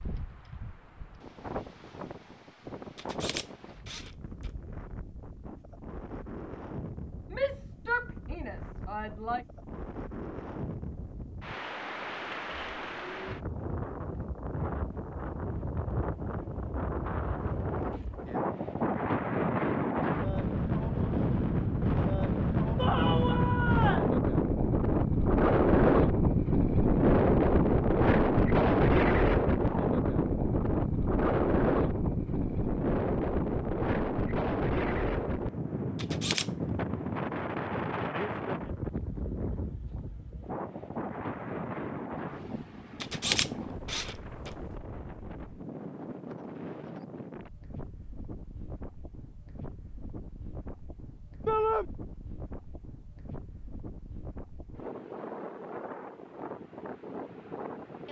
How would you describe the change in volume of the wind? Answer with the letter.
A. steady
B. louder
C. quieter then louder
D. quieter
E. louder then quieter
E.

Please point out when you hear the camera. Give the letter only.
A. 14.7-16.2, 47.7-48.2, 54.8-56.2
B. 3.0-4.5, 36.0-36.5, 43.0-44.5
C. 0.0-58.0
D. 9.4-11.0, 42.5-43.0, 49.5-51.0
B.